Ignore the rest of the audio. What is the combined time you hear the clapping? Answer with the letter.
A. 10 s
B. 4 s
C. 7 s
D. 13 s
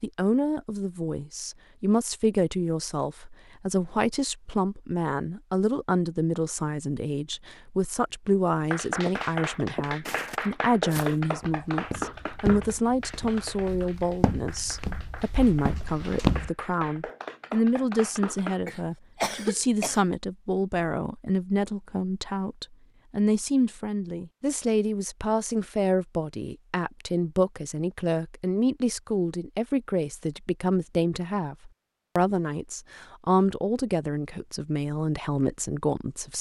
A.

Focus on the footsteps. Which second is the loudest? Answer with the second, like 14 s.
16 s.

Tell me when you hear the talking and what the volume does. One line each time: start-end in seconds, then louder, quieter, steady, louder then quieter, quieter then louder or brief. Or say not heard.
0.0-36.3 steady.